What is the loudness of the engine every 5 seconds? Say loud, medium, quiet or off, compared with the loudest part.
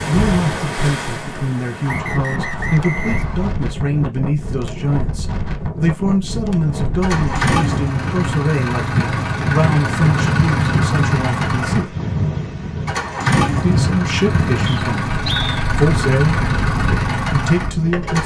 off, loud, loud, loud.